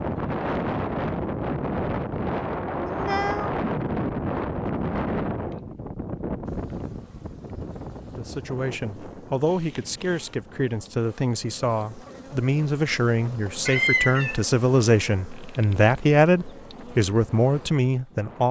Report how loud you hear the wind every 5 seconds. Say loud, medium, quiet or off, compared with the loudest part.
loud, medium, quiet, quiet.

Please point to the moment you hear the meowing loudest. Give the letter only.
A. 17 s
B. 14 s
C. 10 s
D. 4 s
B.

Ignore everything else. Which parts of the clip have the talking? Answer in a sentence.
You can hear the talking from 8.2 to 18.4 s.